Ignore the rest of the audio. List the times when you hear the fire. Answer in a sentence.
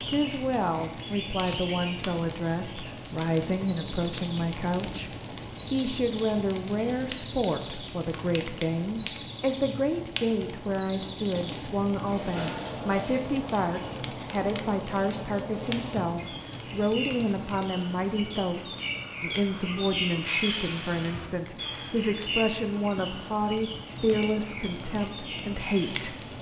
The fire can be heard from 0.0 to 26.3 s.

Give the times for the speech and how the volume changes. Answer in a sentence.
You can hear the speech from 0.1 to 26.1 s, at a steady volume.